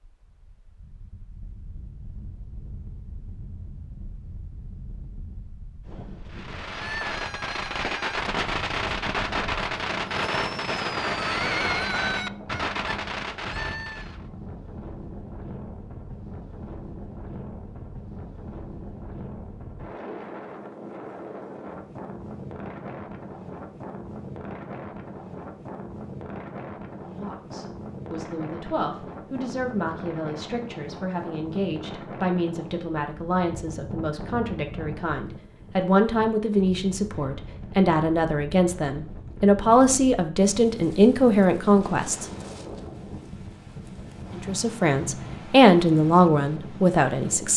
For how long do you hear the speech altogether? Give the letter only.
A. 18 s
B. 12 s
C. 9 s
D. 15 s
A.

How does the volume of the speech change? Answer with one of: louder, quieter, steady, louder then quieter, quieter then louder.
louder.